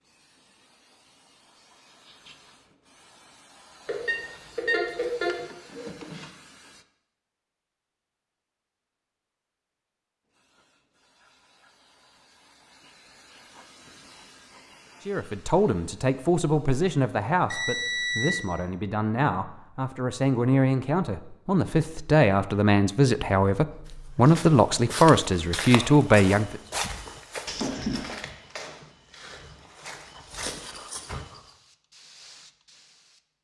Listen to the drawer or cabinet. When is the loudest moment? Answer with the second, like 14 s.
28 s.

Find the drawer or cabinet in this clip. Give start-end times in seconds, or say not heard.
4.8-6.3, 27.4-28.1.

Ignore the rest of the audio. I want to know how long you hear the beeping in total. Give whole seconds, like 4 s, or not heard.
2 s.